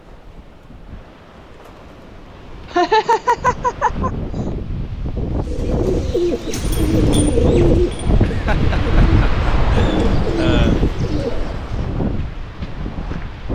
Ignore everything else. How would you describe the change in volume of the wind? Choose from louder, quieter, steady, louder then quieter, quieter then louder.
louder.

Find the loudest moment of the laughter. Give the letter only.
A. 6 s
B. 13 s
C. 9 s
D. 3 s
D.